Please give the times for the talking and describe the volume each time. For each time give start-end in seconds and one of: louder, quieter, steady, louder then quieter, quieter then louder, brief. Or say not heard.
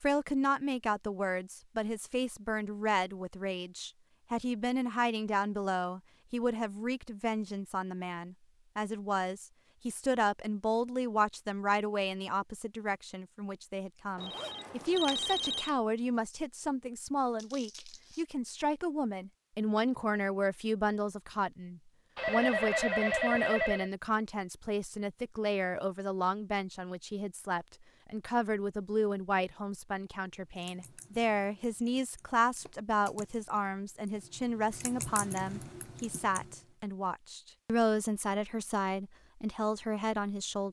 0.0-40.6 steady.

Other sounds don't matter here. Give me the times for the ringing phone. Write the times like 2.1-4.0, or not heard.
14.2-15.8, 22.1-23.9.